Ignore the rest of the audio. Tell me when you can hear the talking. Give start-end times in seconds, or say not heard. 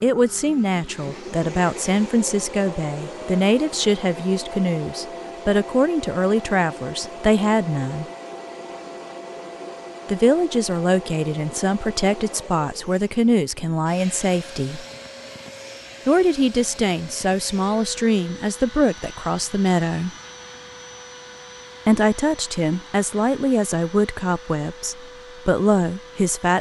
0.0-8.1, 10.1-14.8, 16.1-20.1, 21.9-26.5.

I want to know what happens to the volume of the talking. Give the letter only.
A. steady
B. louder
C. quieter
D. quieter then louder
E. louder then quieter
A.